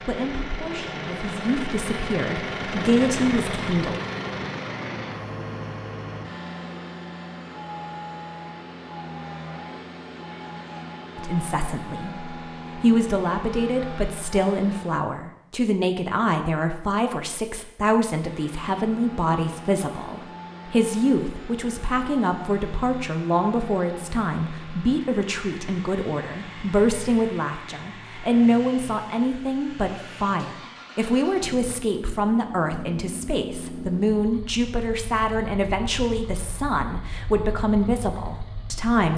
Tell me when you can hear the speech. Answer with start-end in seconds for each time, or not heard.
0.1-4.0, 11.2-39.1.